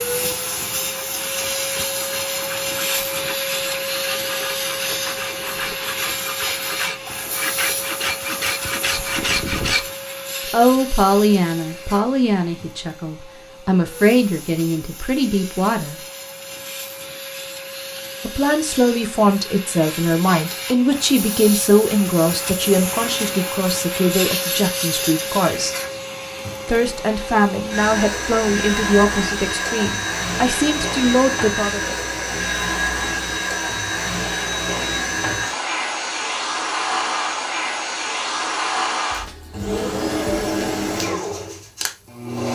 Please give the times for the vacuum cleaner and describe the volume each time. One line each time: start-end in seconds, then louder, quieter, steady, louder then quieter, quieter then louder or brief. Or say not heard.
0.0-42.5 quieter then louder.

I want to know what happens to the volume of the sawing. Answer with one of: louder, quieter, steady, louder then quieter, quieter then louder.
louder.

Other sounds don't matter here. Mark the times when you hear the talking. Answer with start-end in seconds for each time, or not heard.
10.5-15.9, 18.2-25.8, 26.6-31.8.